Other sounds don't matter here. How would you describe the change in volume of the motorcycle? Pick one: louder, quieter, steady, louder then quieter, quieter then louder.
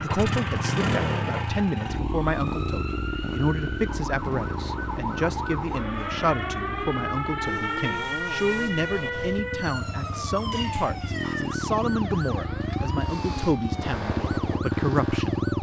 quieter then louder.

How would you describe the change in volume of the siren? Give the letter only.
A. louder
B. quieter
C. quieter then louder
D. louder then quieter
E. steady
D.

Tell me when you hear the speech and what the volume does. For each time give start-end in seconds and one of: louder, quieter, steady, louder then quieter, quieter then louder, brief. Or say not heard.
0.0-15.4 steady.